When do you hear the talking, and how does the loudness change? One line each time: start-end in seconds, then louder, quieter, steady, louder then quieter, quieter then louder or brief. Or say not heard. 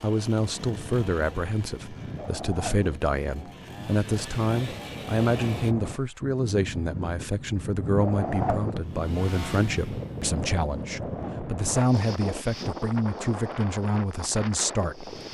0.0-15.2 steady.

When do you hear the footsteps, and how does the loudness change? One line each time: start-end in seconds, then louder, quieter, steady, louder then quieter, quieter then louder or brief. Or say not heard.
not heard.